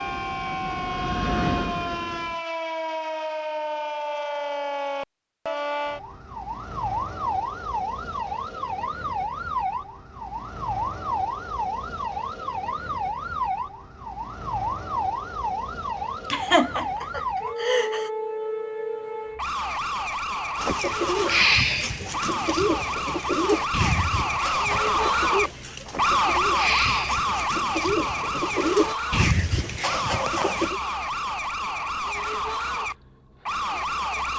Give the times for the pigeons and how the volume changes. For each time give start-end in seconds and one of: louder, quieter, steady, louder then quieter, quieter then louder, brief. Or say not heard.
20.6-30.8 quieter then louder.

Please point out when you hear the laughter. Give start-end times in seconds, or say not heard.
16.3-18.1.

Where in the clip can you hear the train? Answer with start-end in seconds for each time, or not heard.
0.0-2.5.